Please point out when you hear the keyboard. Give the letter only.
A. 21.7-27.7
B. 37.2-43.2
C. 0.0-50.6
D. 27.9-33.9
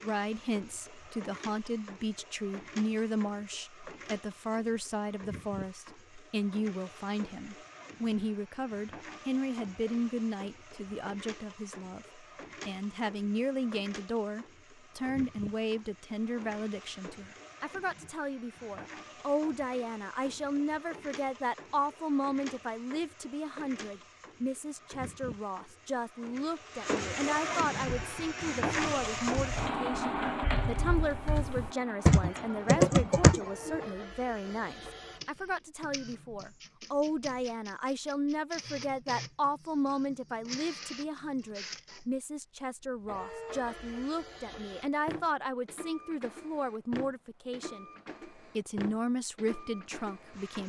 D.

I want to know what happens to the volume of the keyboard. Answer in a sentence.
The loudness of the keyboard goes up.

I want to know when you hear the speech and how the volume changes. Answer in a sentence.
The speech can be heard from 0.0 to 50.6 s, at a steady volume.